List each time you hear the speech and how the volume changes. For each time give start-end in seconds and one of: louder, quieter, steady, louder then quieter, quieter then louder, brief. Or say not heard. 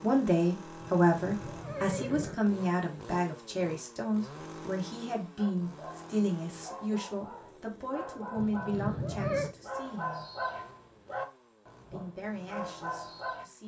0.0-10.3 quieter
11.9-13.6 brief.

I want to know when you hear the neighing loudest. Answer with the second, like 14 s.
9 s.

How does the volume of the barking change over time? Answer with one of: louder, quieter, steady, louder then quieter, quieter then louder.
louder.